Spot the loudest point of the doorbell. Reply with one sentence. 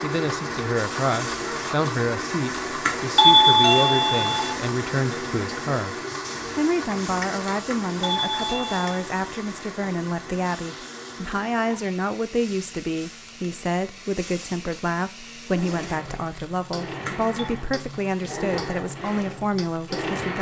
The volume of the doorbell peaks at 3 seconds.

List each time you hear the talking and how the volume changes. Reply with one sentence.
The talking can be heard from 0.0 to 20.3 s, at a steady volume.